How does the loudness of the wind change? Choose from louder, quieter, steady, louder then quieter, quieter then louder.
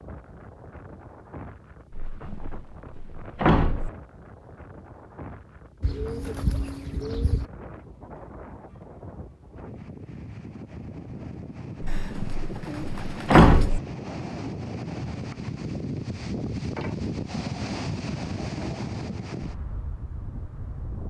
louder.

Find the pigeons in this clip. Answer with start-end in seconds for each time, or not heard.
5.8-7.5, 11.8-13.7.